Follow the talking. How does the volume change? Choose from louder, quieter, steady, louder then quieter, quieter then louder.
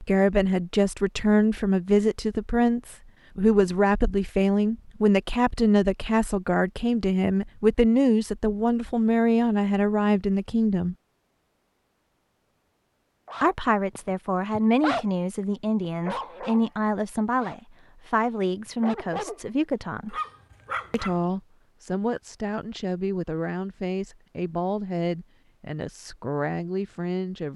quieter.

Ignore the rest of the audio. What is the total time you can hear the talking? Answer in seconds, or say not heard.
24 s.